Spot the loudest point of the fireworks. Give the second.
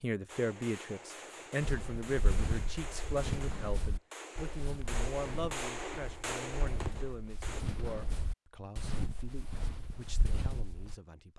6 s.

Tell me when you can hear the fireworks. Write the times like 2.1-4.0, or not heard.
0.2-7.7.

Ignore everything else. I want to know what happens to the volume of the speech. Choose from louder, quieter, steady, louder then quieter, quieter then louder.
quieter.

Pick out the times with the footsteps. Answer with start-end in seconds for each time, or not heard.
1.6-10.9.